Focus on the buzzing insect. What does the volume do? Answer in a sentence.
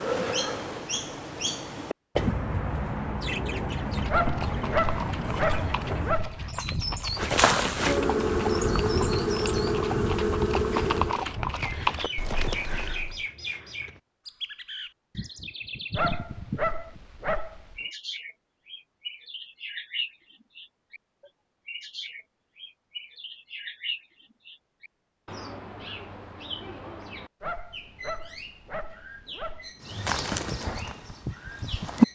The loudness of the buzzing insect stays about the same.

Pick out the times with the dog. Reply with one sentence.
You can hear the dog from 4.0 to 6.4 s, from 15.9 to 17.8 s and from 27.4 to 29.7 s.